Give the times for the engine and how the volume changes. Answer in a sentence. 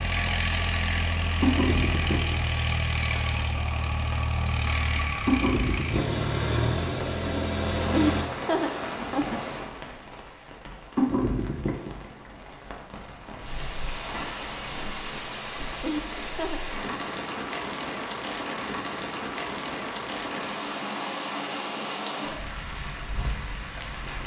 You can hear the engine from 0.0 to 8.3 s, at a steady volume.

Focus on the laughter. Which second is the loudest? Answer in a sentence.
The volume of the laughter peaks at 8 seconds.